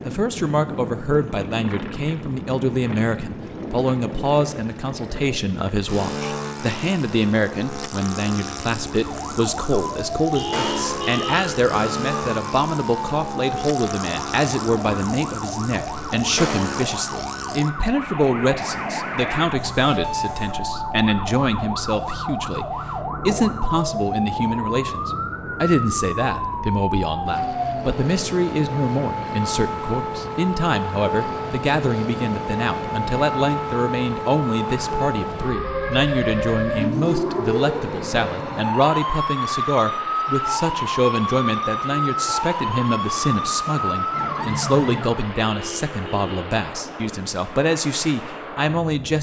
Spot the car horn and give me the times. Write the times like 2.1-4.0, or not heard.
10.3-11.8, 45.4-46.5.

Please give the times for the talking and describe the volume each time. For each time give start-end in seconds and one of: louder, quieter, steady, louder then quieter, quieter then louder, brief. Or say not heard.
0.0-49.1 steady.